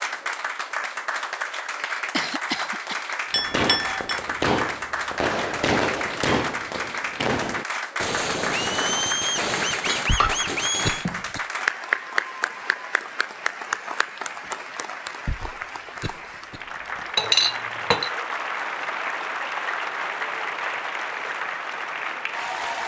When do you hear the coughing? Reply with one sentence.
You can hear the coughing from 2.1 to 3.0 s, from 10.1 to 11.4 s and from 15.2 to 17.1 s.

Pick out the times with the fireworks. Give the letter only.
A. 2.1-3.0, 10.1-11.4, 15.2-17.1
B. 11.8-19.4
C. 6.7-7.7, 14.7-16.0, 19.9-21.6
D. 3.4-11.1
D.